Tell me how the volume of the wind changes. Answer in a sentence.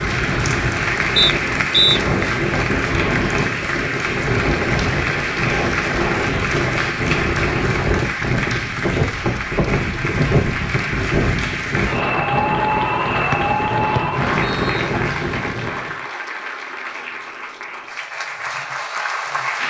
The volume of the wind stays about the same.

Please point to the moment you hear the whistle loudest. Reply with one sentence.
The loudest moment of the whistle is at 2 seconds.